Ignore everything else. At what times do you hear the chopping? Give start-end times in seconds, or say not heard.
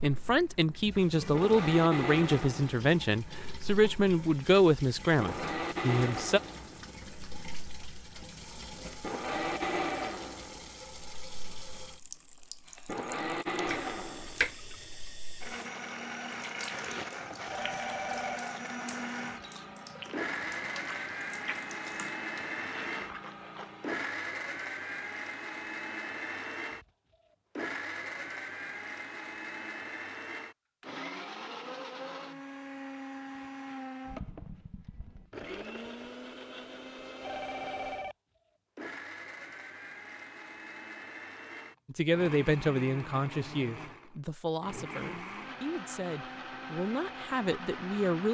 13.7-15.2.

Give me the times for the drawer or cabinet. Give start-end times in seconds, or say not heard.
not heard.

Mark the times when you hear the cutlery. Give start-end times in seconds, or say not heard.
not heard.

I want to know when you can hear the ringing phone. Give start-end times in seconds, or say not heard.
9.2-10.2, 17.4-18.4, 37.2-38.1.